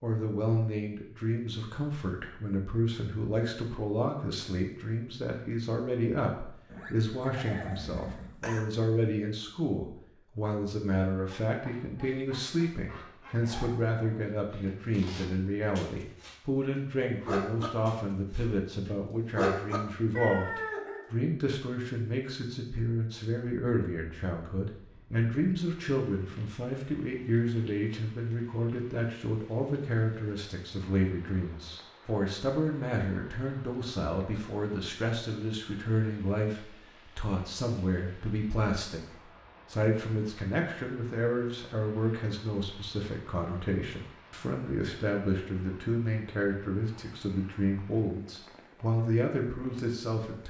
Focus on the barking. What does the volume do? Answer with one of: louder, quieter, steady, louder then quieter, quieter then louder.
louder.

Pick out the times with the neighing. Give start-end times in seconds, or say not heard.
6.7-8.7.